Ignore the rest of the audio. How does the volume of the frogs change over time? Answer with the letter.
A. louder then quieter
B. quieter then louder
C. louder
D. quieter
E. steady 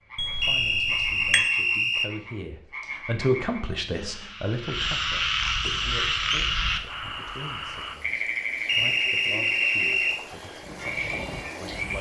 A.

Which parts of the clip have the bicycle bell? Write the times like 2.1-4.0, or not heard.
0.1-1.4.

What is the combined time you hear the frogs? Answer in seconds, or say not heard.
12 s.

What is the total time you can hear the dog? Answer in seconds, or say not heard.
not heard.